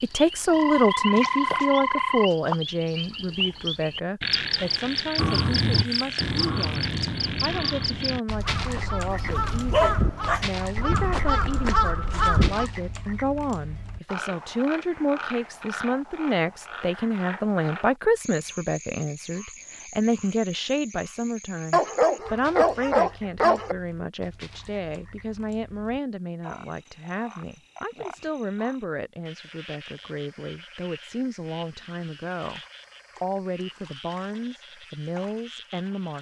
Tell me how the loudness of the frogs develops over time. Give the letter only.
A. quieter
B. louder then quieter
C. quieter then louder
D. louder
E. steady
A.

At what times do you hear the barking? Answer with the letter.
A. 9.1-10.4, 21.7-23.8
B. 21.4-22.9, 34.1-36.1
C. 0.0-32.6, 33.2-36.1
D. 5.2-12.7
A.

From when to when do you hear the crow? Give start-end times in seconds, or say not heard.
5.2-12.7.